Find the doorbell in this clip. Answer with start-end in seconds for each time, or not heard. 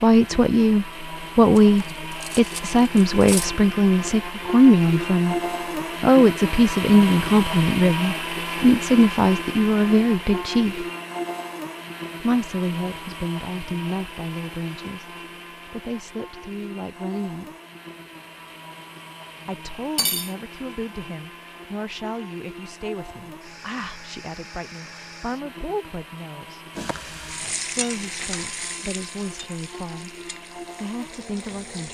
not heard.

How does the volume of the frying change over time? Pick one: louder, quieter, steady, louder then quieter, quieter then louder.
quieter.